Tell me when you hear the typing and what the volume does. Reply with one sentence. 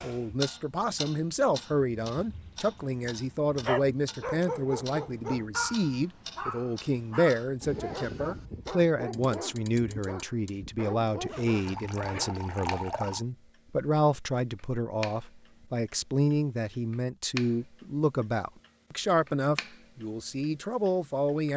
You can't hear the typing here.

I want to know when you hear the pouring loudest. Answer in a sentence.
The volume of the pouring peaks at 13 seconds.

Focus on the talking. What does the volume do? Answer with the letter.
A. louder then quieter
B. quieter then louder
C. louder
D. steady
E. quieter
D.